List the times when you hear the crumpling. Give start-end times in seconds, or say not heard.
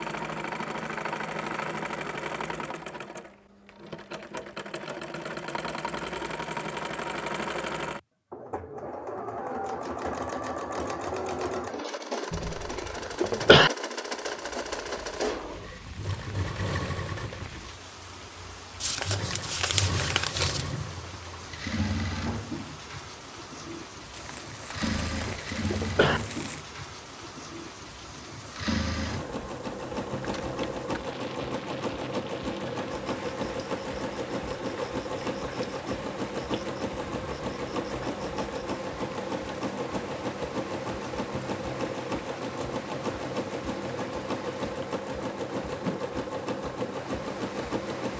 18.8-20.8, 24.1-26.6.